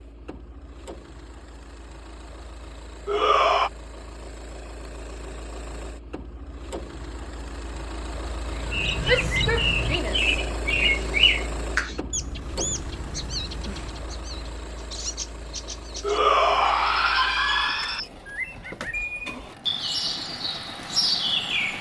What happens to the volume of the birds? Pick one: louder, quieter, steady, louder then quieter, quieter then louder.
quieter then louder.